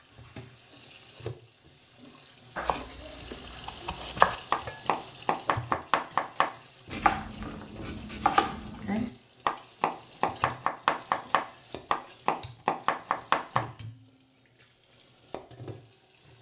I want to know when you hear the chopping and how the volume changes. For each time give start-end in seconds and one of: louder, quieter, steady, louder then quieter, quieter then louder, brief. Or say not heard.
2.5-13.7 steady.